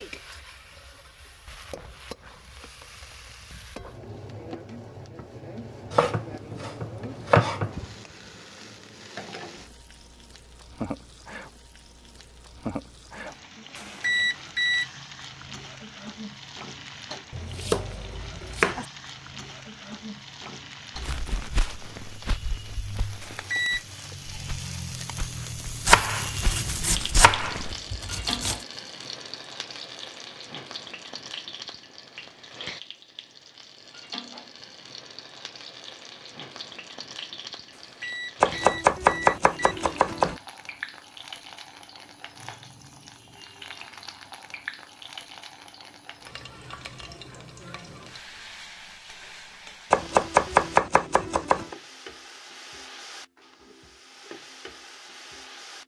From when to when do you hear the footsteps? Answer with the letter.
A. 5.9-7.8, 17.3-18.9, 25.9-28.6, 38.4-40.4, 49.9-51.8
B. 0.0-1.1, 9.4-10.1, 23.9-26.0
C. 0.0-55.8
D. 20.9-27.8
D.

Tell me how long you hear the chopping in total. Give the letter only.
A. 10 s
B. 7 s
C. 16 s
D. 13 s
A.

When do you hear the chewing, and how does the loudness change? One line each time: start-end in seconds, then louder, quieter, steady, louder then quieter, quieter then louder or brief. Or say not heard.
not heard.